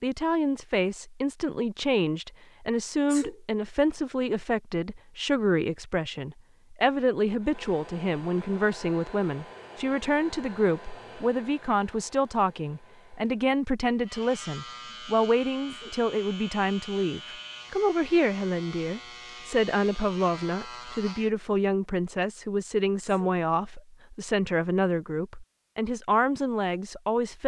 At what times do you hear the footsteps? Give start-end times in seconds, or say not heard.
not heard.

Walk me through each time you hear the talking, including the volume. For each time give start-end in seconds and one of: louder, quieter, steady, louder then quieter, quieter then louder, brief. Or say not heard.
0.0-27.4 steady.